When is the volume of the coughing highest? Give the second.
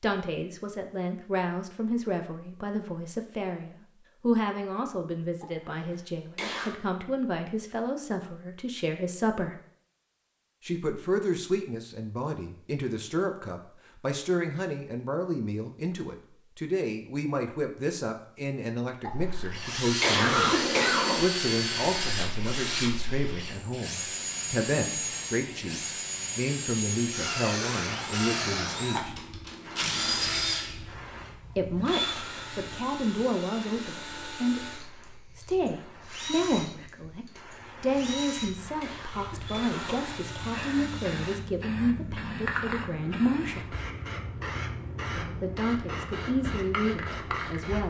20 s.